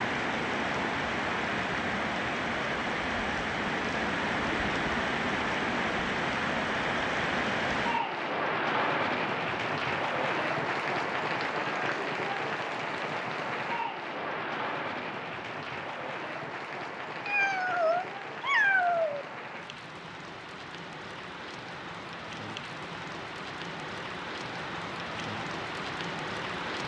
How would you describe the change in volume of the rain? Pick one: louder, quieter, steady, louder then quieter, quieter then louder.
quieter.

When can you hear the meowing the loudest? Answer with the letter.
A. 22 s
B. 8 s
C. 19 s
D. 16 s
C.